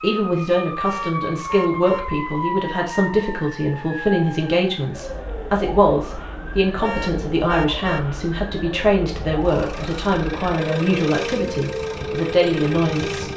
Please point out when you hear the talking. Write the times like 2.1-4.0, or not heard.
0.0-13.2.